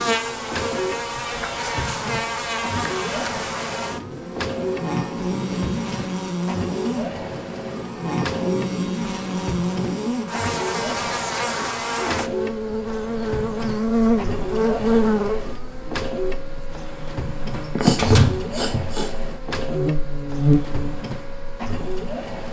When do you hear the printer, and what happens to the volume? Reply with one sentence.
You can hear the printer from 0.0 to 22.4 s, at a steady volume.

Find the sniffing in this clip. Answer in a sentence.
The sniffing can be heard from 17.8 to 19.1 s.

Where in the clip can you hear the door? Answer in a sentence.
You can hear the door from 17.6 to 18.9 s.